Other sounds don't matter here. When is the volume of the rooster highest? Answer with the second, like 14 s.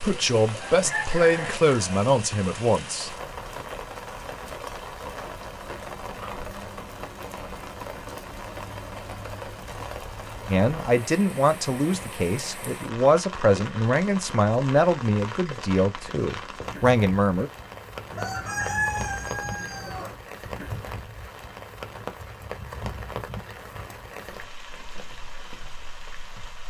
19 s.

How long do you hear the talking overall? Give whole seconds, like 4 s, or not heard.
10 s.